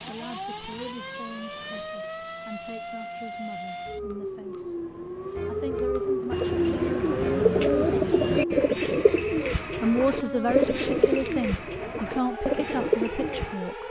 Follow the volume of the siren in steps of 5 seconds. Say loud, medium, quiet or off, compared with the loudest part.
medium, loud, medium.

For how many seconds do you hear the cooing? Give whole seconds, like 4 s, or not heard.
7 s.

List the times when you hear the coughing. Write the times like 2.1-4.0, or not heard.
not heard.